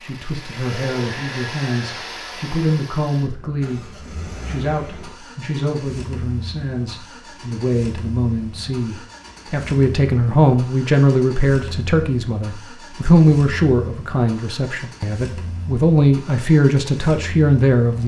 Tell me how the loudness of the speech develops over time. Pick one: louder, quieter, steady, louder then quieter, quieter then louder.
louder.